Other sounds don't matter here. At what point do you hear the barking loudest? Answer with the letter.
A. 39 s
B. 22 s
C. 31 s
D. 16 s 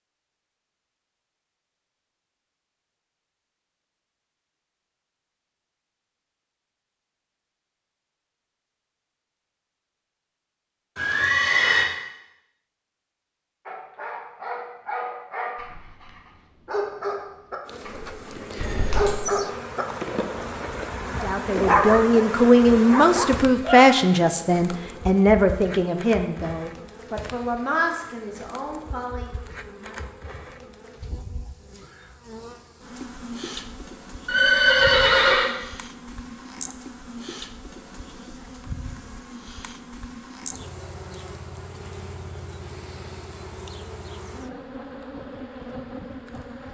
B.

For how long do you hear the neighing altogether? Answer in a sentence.
You can hear the neighing for 3 seconds altogether.